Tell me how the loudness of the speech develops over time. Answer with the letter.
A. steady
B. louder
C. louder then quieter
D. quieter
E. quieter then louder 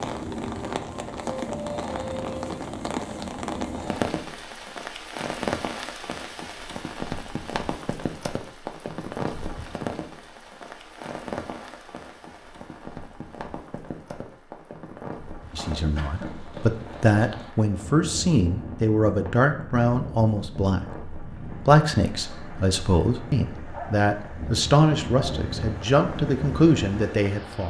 A.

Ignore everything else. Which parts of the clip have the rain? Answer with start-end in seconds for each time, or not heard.
0.0-27.6.